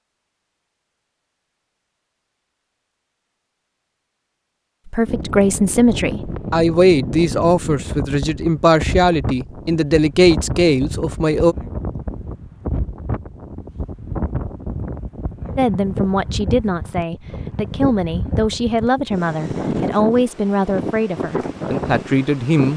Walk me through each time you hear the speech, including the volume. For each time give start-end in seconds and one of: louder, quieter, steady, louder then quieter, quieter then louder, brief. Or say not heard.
4.8-11.6 steady
15.6-22.7 steady.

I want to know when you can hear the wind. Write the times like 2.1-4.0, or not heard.
5.0-22.7.